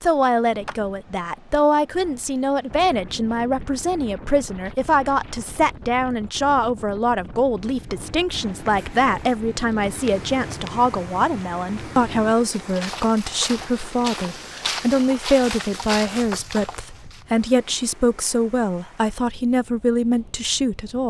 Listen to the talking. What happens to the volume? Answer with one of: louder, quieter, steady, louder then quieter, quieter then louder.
steady.